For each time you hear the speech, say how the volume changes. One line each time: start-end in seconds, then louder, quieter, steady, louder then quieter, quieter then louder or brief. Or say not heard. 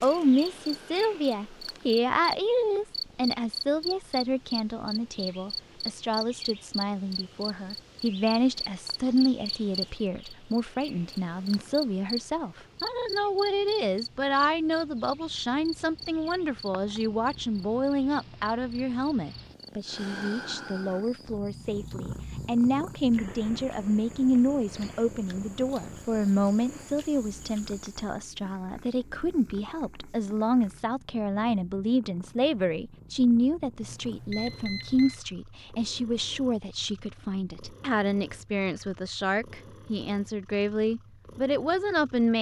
0.0-42.3 steady.